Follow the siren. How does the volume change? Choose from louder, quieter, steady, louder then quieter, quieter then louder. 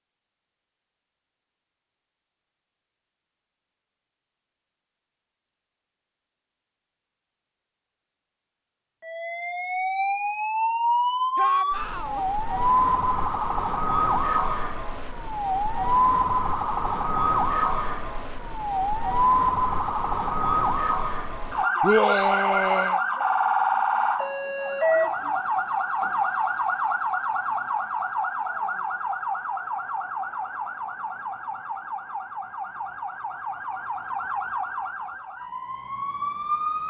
quieter.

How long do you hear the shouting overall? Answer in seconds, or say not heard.
2 s.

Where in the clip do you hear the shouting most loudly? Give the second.
22 s.